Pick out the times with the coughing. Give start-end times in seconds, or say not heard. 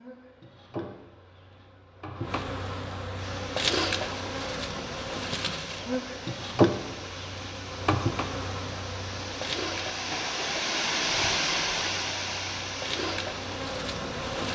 10.1-10.8.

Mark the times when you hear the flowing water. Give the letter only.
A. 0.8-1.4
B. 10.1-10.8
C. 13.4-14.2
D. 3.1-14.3
D.